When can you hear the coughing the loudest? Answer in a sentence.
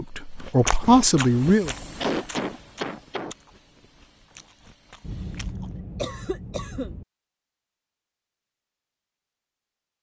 The loudest moment of the coughing is at 2 seconds.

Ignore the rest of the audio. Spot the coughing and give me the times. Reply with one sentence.
You can hear the coughing from 2.0 to 3.4 s and from 5.0 to 7.0 s.